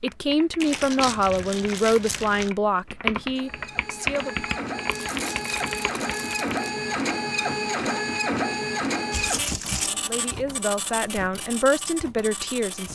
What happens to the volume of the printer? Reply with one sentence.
The loudness of the printer goes up, then down.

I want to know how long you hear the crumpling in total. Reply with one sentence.
The crumpling can be heard for 5 seconds in total.